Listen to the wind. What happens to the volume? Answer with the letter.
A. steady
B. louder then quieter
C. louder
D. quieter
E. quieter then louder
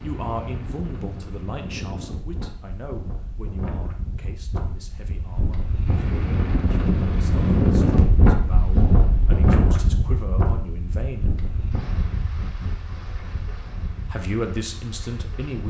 B.